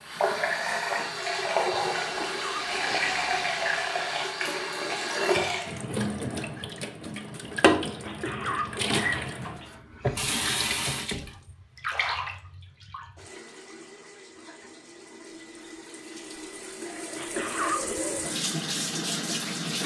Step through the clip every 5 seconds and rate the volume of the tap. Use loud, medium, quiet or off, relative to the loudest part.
loud, loud, medium, medium.